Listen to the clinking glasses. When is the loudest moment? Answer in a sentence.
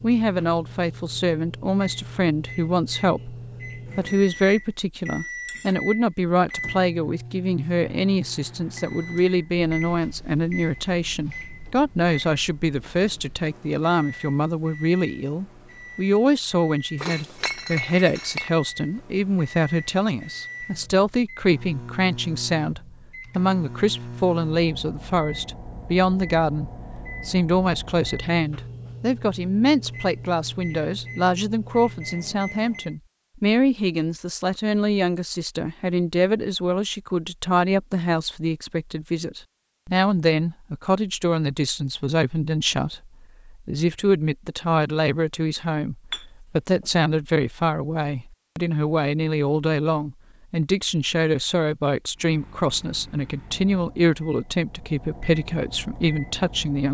The volume of the clinking glasses peaks at 18 seconds.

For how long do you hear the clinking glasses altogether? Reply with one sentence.
The clinking glasses can be heard for 2 seconds in total.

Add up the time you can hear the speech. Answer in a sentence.
The speech can be heard for 56 seconds in total.